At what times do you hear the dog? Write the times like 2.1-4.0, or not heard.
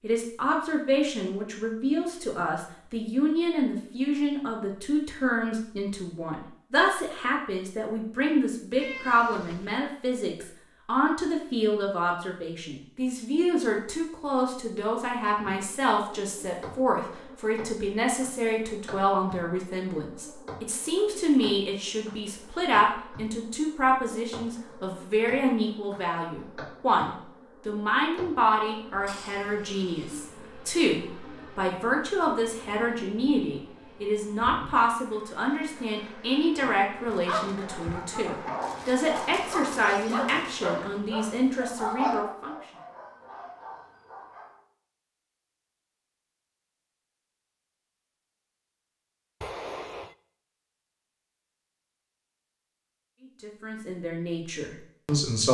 37.0-44.6.